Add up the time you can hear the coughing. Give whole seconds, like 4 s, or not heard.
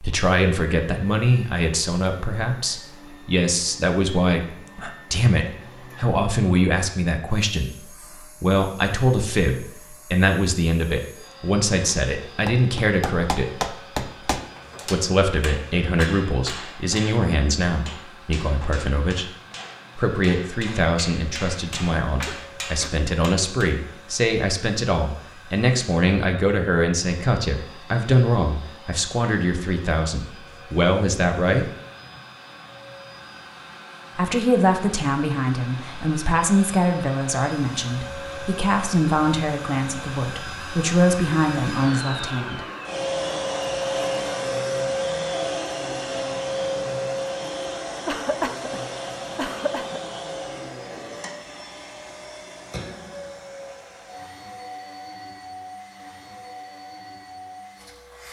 3 s.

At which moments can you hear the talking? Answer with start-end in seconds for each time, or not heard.
0.0-13.7, 14.9-19.2, 19.9-31.7, 34.1-42.6.